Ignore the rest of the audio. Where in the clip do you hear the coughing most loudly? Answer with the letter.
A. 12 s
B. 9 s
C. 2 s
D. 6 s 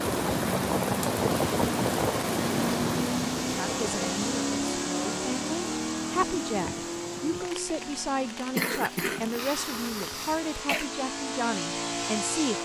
B.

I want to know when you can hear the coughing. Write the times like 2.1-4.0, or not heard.
8.6-10.9.